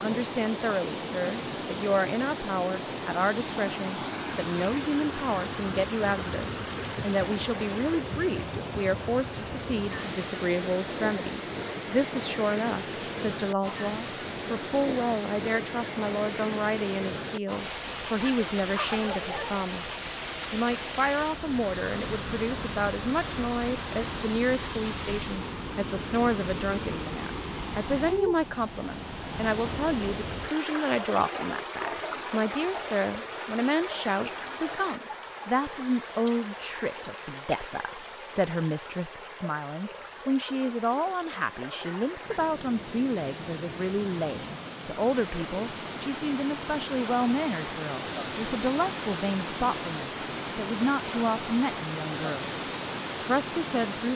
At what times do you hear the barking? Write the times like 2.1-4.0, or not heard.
18.2-19.6.